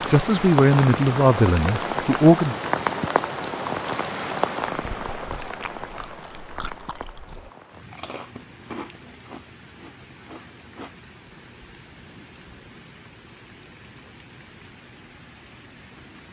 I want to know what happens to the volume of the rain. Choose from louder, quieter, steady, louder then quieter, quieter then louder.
quieter.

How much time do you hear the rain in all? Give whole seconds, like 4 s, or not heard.
16 s.